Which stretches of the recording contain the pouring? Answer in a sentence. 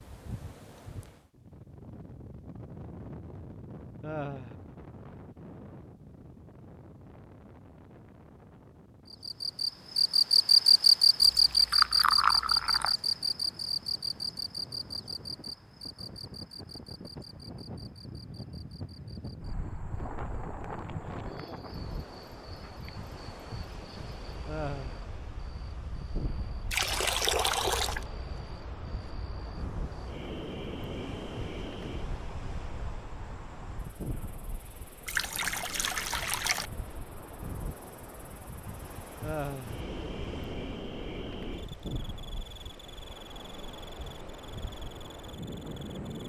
The pouring can be heard from 11.2 to 12.9 s, from 26.7 to 28.1 s and from 35.0 to 36.7 s.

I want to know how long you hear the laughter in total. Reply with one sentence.
You can hear the laughter for 2 seconds altogether.